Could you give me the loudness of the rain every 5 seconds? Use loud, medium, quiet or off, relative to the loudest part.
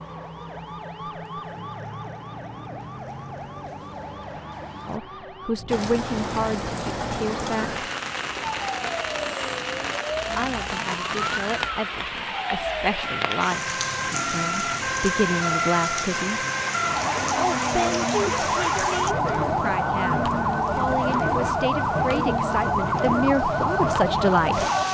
off, loud, loud, loud, loud.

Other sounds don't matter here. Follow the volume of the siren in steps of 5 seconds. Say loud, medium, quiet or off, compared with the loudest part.
quiet, quiet, medium, loud, loud.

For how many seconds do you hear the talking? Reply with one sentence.
The talking can be heard for 16 seconds in total.